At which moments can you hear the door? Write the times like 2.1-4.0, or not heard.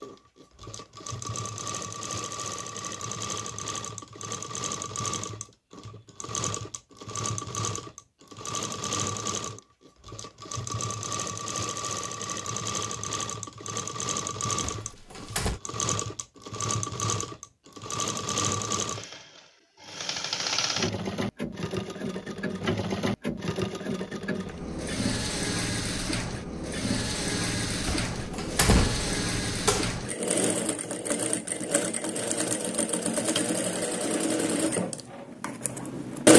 14.6-15.6, 27.9-30.0.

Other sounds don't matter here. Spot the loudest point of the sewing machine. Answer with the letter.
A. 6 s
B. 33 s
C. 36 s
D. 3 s
C.